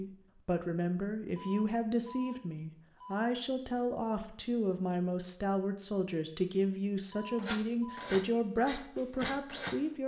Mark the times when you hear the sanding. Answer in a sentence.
The sanding can be heard from 7.3 to 9.8 s.